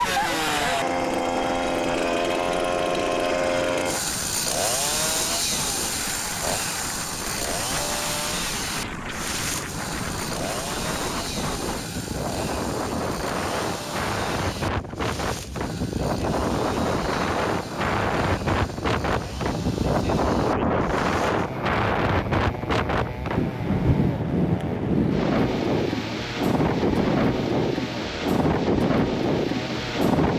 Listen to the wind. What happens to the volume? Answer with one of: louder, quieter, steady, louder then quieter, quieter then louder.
louder.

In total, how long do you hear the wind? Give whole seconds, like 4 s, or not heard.
30 s.